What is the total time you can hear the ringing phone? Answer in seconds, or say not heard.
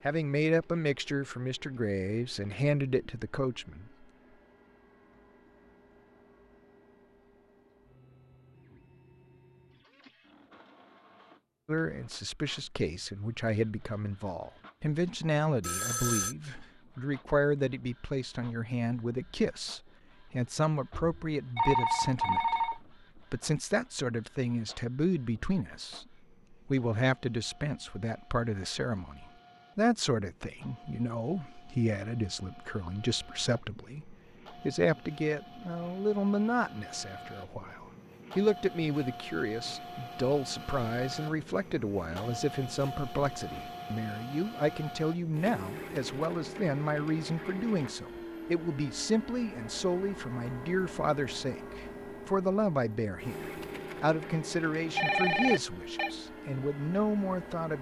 4 s.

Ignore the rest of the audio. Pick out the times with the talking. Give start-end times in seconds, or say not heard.
0.0-4.0, 11.7-57.7.